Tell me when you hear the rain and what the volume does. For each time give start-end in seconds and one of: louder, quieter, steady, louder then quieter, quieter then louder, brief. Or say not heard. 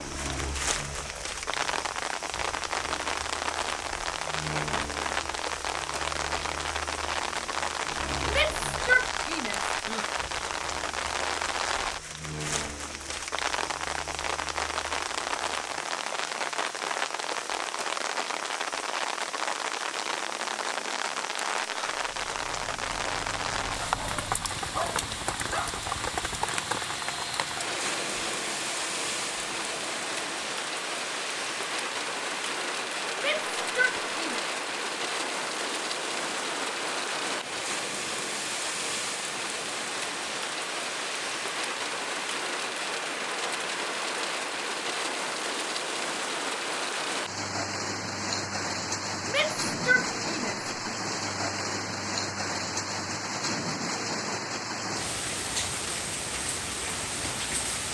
0.0-57.8 steady.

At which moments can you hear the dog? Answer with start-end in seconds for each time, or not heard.
23.8-25.7.